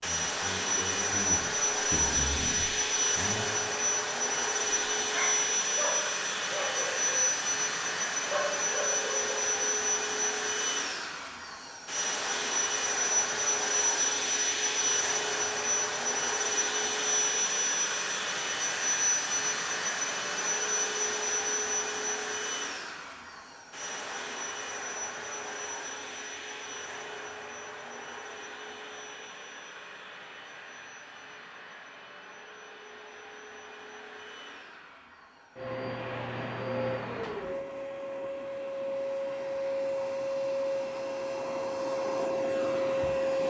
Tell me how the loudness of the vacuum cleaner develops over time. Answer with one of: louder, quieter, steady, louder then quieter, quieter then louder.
quieter then louder.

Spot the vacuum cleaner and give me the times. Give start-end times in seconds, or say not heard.
0.0-43.4.